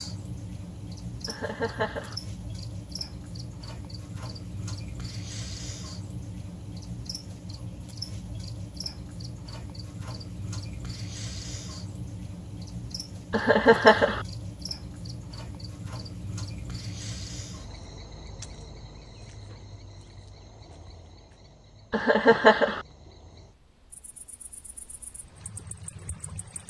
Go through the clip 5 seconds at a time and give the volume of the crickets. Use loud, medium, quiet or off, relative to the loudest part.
loud, loud, loud, loud, quiet, medium.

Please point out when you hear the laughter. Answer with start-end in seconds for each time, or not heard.
1.2-2.1, 13.3-14.2, 21.9-22.9.